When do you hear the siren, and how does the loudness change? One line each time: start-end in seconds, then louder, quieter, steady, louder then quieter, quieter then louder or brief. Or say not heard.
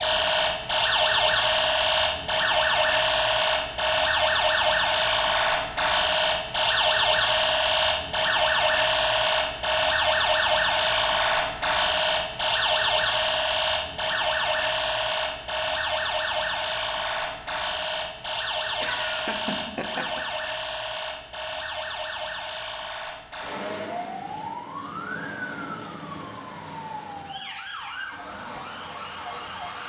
0.0-29.8 quieter.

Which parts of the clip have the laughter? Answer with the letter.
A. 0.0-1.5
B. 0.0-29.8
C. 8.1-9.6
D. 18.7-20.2
D.